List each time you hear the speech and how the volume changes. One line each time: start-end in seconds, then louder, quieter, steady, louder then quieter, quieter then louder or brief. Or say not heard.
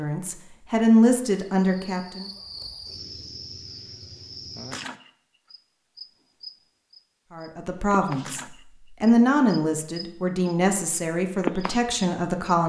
0.0-2.3 brief
7.3-12.6 louder then quieter.